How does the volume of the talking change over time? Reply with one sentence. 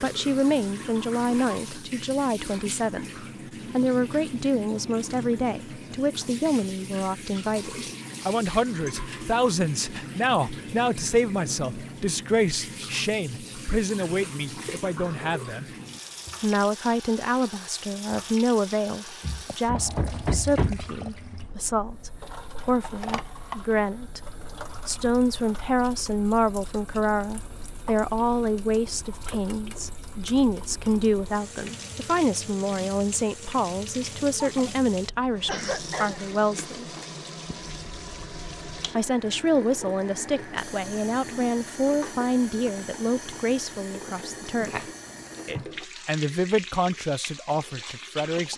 The loudness of the talking stays about the same.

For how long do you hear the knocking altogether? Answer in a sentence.
The knocking can be heard for 2 seconds in total.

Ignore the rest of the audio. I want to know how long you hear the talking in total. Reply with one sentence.
The talking can be heard for 45 seconds in total.